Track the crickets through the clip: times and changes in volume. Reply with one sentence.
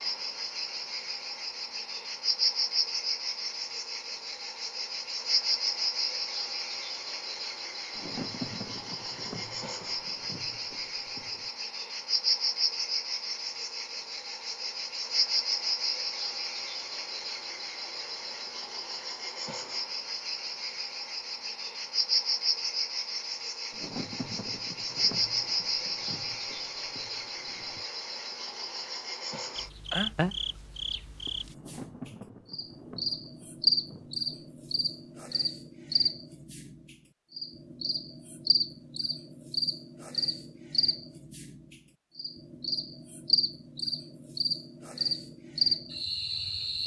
The crickets can be heard from 0.0 to 46.8 s, at a steady volume.